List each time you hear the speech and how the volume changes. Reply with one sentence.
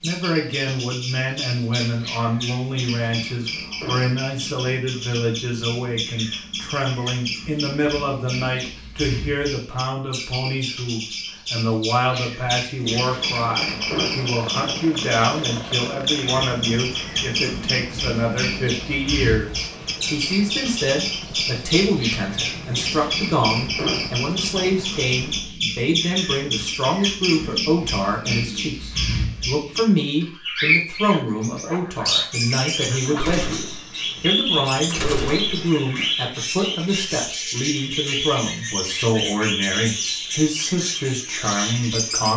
The speech can be heard from 0.0 to 42.3 s, at a steady volume.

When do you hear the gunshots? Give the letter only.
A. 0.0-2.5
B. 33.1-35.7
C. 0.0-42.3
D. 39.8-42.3
B.